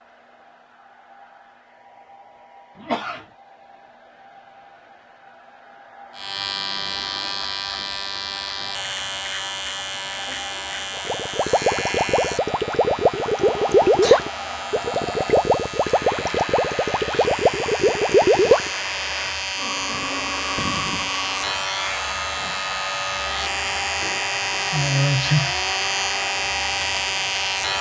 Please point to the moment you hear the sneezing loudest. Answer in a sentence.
The loudest moment of the sneezing is at 25 seconds.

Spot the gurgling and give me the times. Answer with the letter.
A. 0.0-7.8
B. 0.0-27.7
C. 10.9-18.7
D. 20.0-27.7
C.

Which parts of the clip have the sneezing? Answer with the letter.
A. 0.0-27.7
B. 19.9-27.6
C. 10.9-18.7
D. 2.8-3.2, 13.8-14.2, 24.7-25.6
D.